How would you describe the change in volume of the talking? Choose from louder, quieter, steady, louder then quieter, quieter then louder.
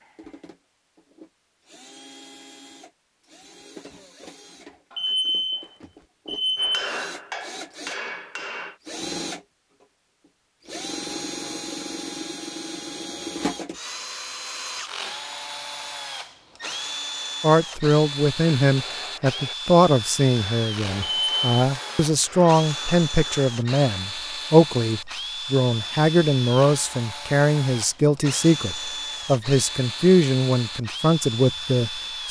steady.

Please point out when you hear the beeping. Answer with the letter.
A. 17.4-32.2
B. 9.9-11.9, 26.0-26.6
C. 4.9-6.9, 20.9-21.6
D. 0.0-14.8
C.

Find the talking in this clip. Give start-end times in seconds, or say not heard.
17.4-32.2.